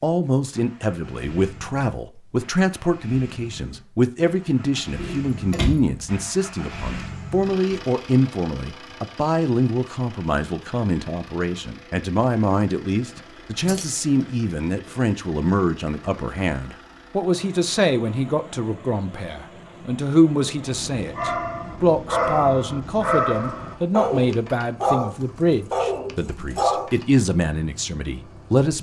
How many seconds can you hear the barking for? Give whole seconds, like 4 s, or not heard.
6 s.